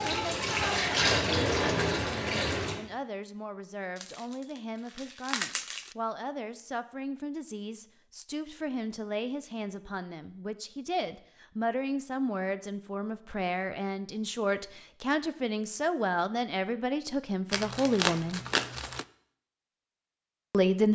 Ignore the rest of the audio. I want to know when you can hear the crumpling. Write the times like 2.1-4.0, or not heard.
4.0-6.0, 17.5-19.1.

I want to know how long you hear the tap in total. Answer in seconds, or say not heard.
3 s.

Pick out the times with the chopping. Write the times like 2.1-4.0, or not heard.
not heard.